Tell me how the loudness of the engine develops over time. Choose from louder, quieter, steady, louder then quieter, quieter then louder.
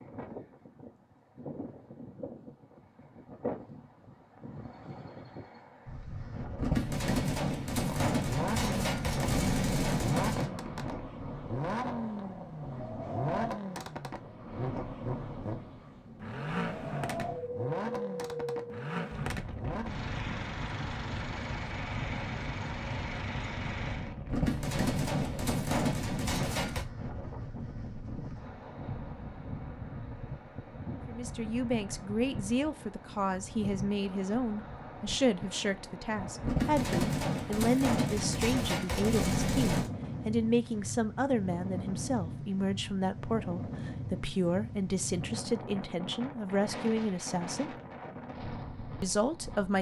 steady.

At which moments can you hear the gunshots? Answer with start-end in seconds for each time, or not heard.
6.5-10.5, 24.3-26.9, 36.4-39.9.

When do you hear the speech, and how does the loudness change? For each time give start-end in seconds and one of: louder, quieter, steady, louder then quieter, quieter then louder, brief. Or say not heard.
31.1-47.8 steady
49.0-49.7 brief.